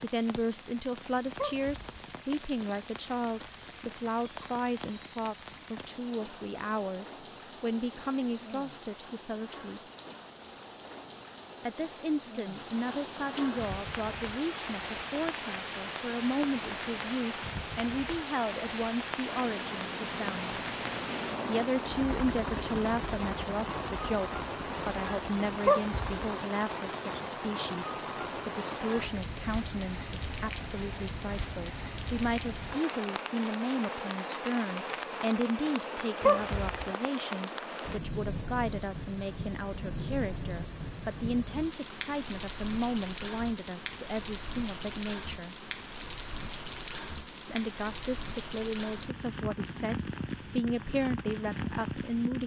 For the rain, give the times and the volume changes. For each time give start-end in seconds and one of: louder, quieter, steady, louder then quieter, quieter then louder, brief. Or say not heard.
0.0-52.4 louder.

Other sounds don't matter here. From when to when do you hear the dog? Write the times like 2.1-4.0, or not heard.
1.4-2.0, 25.6-26.2, 36.2-36.9.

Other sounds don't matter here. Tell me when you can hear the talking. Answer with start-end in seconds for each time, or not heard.
0.0-9.8, 11.6-20.6, 21.4-45.5, 47.4-52.4.